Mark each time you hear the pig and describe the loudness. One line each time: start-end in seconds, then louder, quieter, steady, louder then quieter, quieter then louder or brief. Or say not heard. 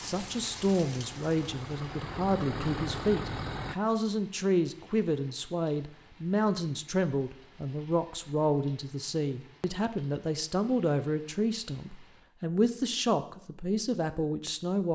not heard.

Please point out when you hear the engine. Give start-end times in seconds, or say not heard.
0.0-3.8.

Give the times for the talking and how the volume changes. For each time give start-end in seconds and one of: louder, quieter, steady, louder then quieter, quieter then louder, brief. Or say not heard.
0.0-14.9 steady.